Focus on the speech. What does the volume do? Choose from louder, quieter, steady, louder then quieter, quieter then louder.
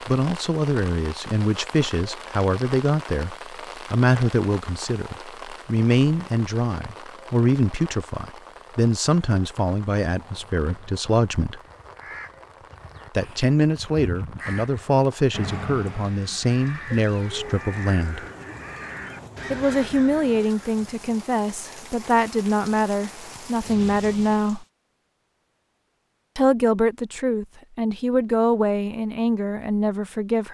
steady.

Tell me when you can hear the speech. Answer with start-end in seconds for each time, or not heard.
0.1-11.6, 13.2-18.2, 19.5-24.6, 26.4-30.4.